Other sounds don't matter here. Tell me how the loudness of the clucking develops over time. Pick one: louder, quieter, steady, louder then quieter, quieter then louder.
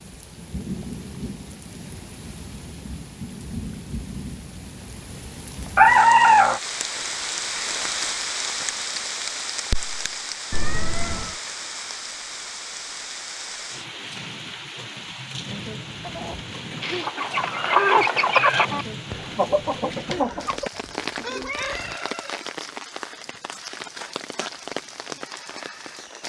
louder then quieter.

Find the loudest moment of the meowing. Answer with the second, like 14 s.
6 s.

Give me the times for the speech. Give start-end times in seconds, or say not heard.
not heard.